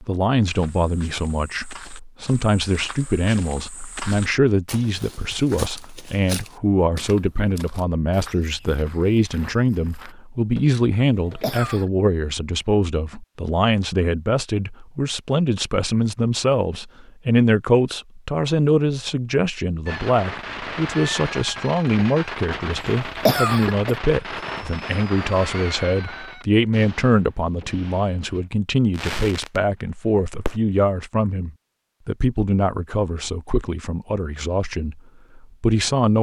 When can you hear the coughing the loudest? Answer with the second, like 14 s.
23 s.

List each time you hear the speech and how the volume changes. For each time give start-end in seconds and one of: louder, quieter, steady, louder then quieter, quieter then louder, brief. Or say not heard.
0.0-36.1 steady.